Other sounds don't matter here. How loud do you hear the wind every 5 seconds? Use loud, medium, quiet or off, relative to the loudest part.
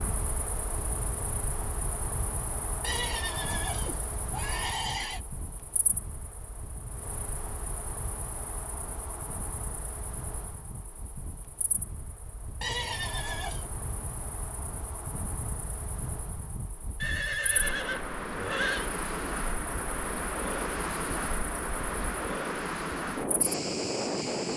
medium, quiet, quiet, medium, loud.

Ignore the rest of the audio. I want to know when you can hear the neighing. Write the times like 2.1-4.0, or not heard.
2.8-5.2, 12.6-13.7, 17.0-18.9.